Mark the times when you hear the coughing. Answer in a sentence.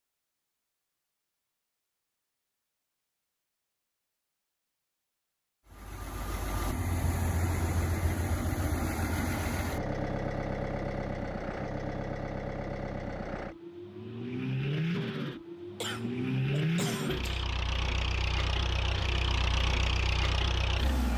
You can hear the coughing from 15.8 to 17.4 s.